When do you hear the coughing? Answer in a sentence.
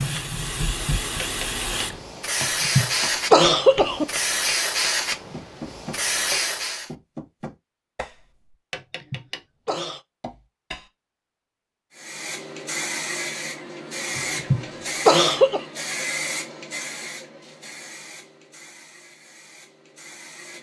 You can hear the coughing from 2.4 to 4.0 s, from 8.8 to 10.0 s and from 14.2 to 15.7 s.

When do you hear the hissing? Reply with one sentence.
You can hear the hissing from 0.0 to 6.9 s and from 11.9 to 20.5 s.